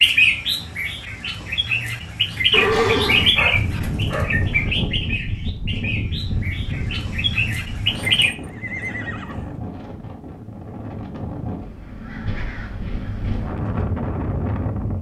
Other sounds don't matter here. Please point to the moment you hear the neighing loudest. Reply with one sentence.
The loudest moment of the neighing is at 3 seconds.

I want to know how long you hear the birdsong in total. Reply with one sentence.
The birdsong can be heard for 8 seconds in total.